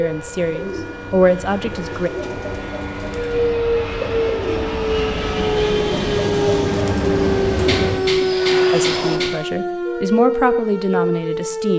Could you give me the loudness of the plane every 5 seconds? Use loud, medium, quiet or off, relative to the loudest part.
medium, loud, off.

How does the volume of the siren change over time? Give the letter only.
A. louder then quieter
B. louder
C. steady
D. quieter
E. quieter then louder
B.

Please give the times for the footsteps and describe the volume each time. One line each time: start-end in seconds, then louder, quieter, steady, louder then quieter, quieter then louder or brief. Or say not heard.
not heard.